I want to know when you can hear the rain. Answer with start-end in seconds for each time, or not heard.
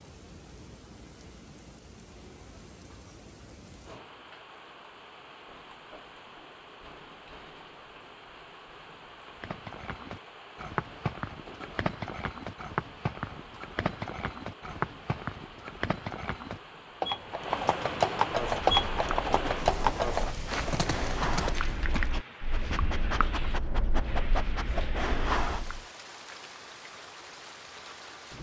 0.0-28.3.